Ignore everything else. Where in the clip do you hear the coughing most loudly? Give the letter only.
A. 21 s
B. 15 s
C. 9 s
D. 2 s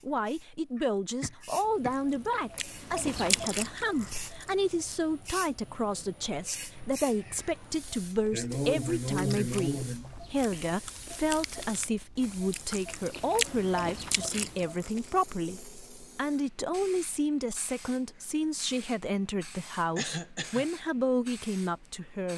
C.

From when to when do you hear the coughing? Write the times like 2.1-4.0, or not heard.
0.8-1.9, 8.3-10.2, 19.9-20.7.